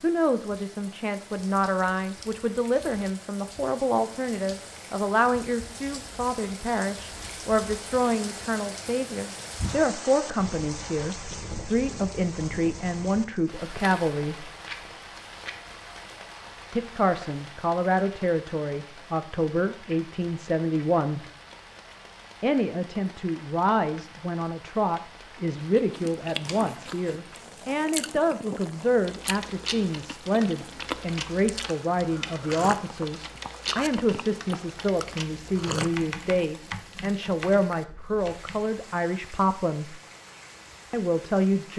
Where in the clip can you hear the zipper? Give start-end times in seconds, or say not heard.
not heard.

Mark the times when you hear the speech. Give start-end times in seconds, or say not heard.
0.0-14.5, 16.7-21.2, 22.4-40.0, 40.9-41.7.